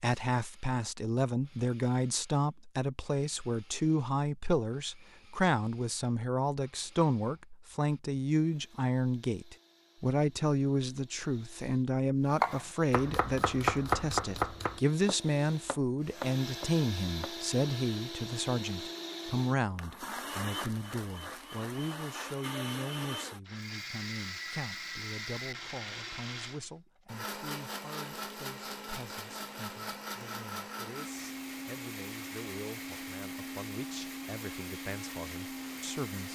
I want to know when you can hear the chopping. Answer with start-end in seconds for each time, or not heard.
12.3-17.4.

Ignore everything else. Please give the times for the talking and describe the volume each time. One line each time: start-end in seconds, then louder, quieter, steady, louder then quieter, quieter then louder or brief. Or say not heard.
0.0-36.3 quieter.